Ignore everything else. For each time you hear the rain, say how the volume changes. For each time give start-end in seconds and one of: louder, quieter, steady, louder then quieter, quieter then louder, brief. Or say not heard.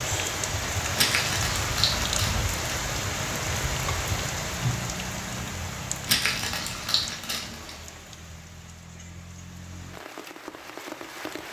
0.0-11.4 quieter.